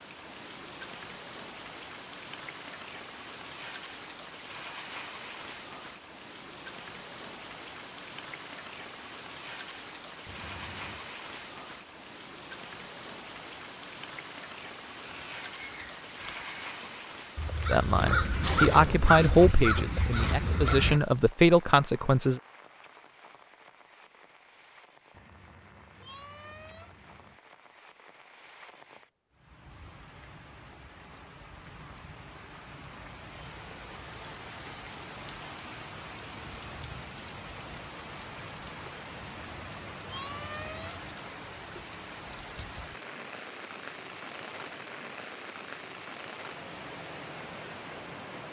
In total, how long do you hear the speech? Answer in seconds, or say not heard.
5 s.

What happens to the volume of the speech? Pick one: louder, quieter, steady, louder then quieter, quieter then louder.
quieter then louder.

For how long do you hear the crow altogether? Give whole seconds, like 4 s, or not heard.
6 s.